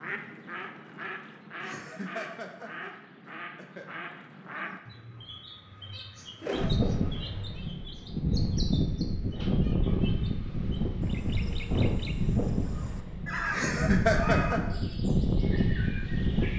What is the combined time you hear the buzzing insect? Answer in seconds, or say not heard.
not heard.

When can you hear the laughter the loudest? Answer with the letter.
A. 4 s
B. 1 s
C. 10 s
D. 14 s
D.